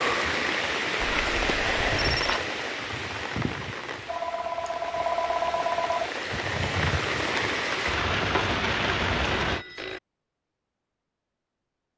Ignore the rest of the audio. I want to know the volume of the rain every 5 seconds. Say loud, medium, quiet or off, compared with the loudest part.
loud, loud, off.